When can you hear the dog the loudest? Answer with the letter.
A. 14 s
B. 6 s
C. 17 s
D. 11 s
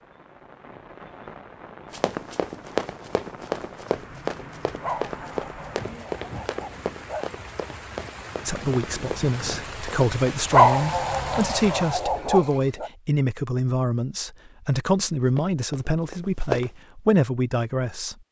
D.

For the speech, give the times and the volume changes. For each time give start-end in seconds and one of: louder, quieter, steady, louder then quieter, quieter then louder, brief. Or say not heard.
8.4-18.1 steady.